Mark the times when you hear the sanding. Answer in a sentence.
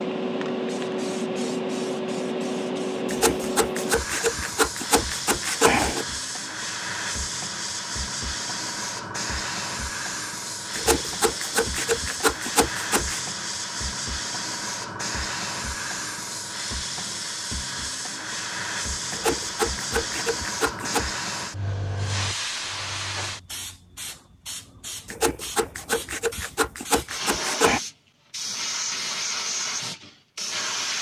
You can hear the sanding from 3.0 to 6.0 s, from 10.7 to 13.2 s, from 19.1 to 21.1 s and from 25.1 to 27.8 s.